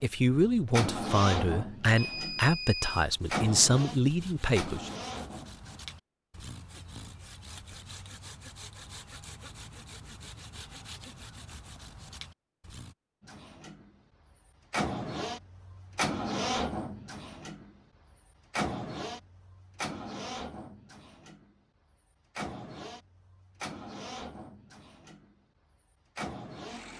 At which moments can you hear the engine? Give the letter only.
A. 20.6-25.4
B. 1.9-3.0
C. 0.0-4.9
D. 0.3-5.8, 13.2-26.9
D.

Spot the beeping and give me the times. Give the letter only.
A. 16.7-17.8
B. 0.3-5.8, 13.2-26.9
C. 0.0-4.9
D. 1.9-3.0
D.